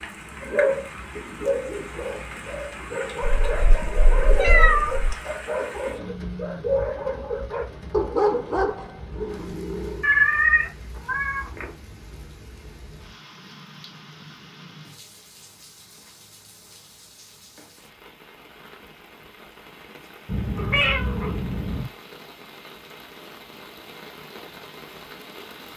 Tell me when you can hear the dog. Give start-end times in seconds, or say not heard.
0.0-10.1.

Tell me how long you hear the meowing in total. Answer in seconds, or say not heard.
5 s.